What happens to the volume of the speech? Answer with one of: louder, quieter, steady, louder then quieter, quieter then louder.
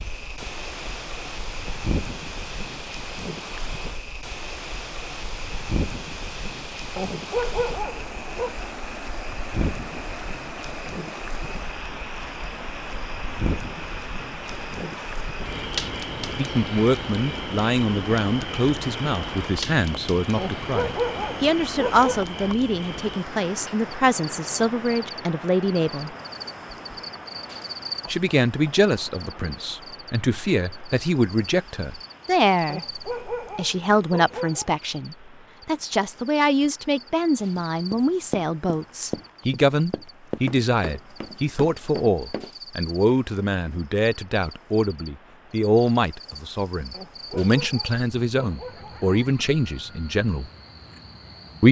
steady.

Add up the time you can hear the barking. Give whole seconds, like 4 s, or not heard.
8 s.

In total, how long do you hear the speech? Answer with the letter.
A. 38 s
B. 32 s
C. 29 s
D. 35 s
B.